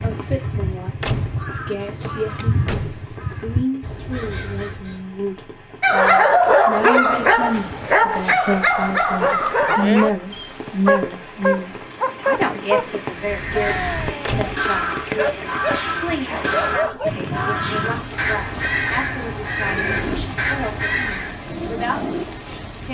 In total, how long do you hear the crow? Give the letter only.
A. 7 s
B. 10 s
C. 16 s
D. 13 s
D.